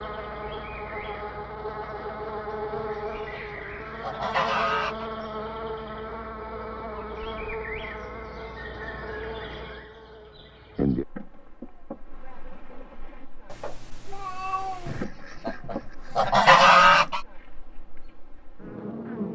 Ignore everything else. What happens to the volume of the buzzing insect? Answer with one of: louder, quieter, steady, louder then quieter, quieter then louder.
quieter.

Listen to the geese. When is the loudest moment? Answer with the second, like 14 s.
17 s.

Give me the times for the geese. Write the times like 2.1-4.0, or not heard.
2.7-5.0, 14.8-17.2.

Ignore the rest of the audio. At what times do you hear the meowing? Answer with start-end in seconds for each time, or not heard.
13.4-15.1.